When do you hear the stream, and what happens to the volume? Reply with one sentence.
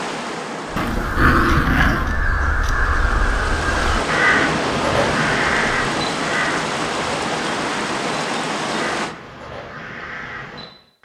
The stream can be heard from 0.0 to 9.2 s, getting louder.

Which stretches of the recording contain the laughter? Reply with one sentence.
The laughter can't be heard in this clip.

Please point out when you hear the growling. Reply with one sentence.
The growling can be heard from 0.8 to 2.1 s.